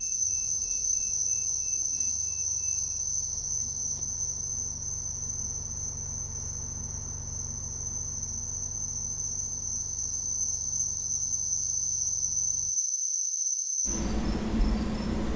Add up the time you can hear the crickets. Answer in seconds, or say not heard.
15 s.